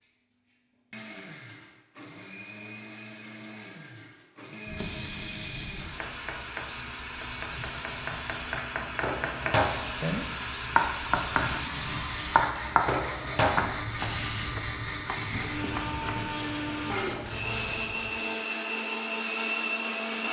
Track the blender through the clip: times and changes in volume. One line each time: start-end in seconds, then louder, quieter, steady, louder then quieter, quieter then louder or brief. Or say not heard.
0.0-20.2 louder.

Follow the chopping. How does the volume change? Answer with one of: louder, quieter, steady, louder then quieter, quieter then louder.
louder then quieter.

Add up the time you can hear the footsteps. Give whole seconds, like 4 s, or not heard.
not heard.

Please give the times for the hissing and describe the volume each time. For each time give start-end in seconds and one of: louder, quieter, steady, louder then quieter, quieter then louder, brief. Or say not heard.
4.7-18.1 louder then quieter.